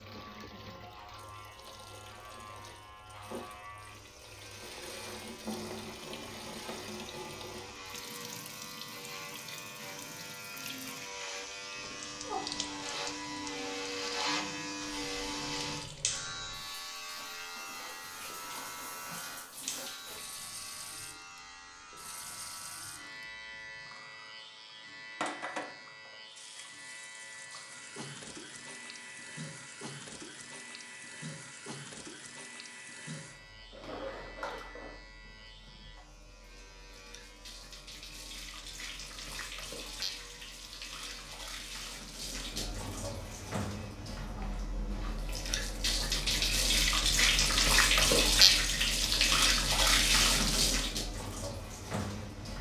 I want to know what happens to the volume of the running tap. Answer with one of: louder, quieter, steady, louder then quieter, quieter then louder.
louder.